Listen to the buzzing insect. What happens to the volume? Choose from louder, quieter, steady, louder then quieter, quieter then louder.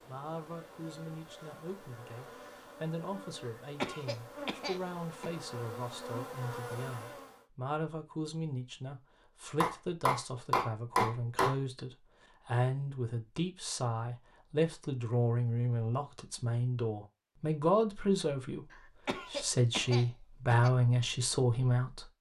louder.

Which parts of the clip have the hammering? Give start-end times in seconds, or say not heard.
9.6-11.6.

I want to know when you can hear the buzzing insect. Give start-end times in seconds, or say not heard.
0.0-7.5.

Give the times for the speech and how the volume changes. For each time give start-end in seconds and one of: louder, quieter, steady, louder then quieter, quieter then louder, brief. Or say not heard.
0.1-22.1 louder.